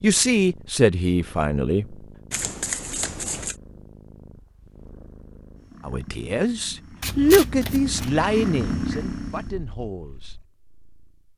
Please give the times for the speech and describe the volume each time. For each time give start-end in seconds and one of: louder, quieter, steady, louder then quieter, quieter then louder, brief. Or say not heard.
0.0-1.9 brief
5.8-10.3 louder then quieter.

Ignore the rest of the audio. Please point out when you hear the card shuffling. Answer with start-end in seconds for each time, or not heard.
2.3-3.5, 7.0-8.2.